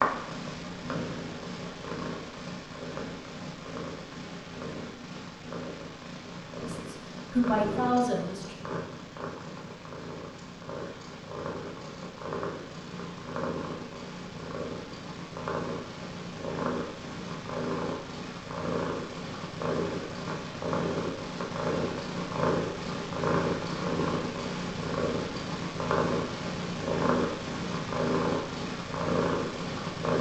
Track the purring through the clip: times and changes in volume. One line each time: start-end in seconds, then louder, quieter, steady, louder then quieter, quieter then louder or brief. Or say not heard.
0.0-30.1 louder.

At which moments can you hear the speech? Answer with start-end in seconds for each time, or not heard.
6.6-8.6.